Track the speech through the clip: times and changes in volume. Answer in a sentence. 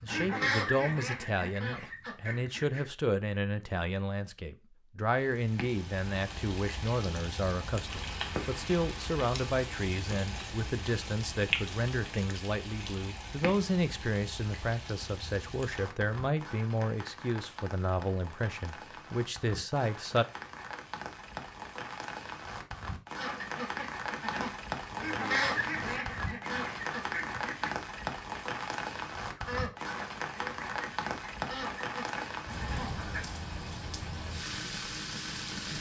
You can hear the speech from 0.0 to 20.2 s, at a steady volume.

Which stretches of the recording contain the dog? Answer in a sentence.
The dog can't be heard in this clip.